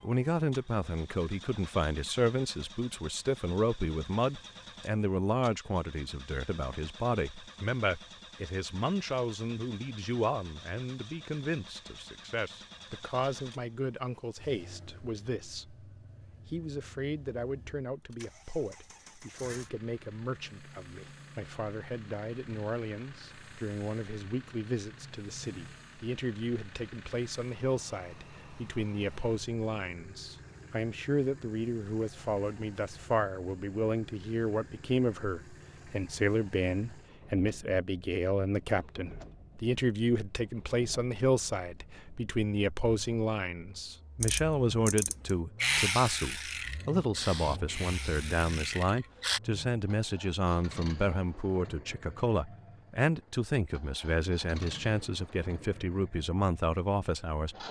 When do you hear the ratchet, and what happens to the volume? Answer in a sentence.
The ratchet can be heard from 44.2 to 49.4 s, getting louder then quieter.